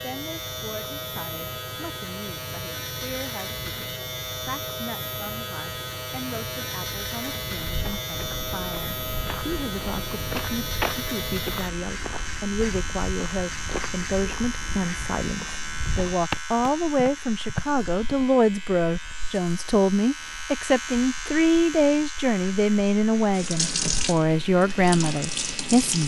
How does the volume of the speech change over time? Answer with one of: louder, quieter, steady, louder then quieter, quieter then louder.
louder.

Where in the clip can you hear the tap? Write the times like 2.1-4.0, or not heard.
23.3-26.0.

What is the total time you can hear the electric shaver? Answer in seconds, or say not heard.
26 s.